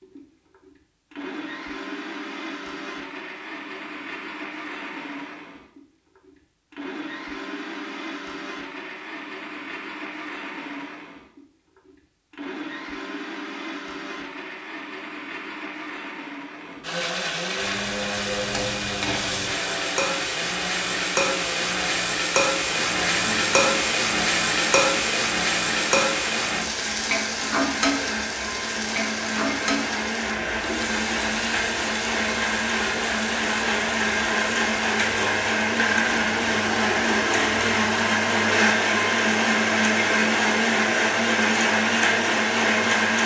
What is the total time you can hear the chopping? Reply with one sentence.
The chopping can't be heard in this clip.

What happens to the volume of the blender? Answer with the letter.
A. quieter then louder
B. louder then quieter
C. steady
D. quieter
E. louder
E.